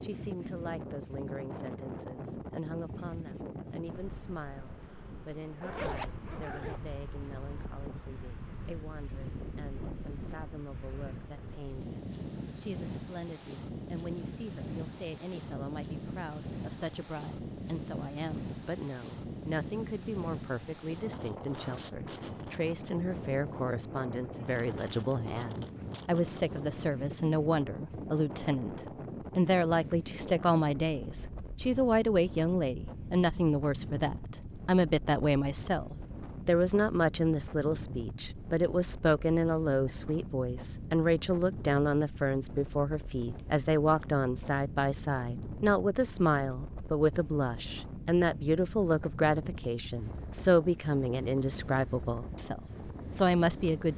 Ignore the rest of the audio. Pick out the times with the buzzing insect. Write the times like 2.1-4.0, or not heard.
not heard.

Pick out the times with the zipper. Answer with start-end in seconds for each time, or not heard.
5.5-6.8.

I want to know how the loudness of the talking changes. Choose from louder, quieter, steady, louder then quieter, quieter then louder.
louder.